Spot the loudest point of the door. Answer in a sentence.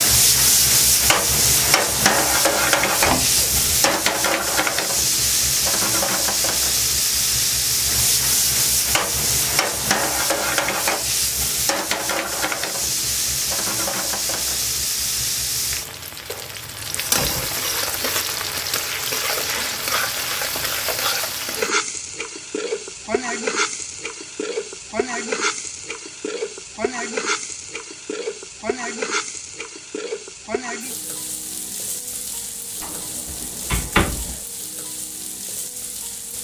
The loudest moment of the door is at 34 seconds.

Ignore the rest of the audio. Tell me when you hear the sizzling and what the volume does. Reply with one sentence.
The sizzling can be heard from 0.0 to 36.3 s, getting quieter.